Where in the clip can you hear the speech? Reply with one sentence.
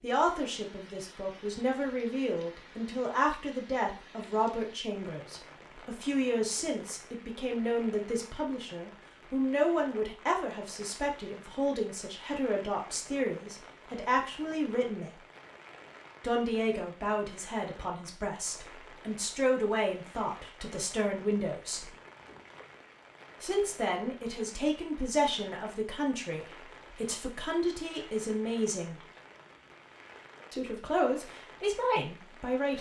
The speech can be heard from 0.0 to 15.1 s, from 16.2 to 21.9 s, from 23.4 to 29.0 s and from 30.5 to 32.7 s.